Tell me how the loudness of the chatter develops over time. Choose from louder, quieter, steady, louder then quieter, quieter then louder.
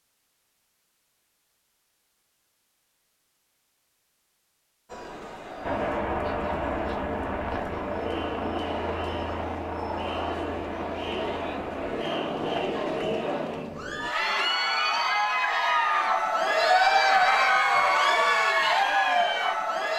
louder.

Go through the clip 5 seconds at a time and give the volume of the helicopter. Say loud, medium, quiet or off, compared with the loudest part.
off, loud, medium, off.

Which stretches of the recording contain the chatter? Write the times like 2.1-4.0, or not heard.
4.8-19.9.